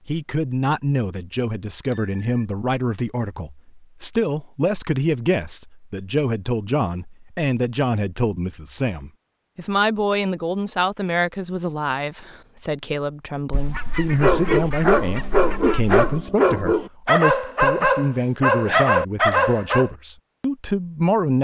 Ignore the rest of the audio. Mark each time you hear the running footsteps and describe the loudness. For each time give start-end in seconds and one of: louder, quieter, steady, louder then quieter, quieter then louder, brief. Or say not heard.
not heard.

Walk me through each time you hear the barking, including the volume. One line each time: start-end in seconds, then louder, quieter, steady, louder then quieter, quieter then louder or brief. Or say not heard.
14.2-19.9 steady.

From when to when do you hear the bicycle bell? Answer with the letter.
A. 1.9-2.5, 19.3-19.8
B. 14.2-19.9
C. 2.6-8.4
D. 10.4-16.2
A.